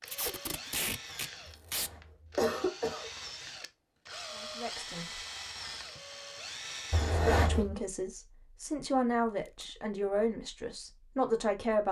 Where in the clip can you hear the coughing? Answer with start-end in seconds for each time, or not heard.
1.4-3.1, 6.9-7.8.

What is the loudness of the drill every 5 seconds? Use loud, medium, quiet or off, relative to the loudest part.
loud, loud, off.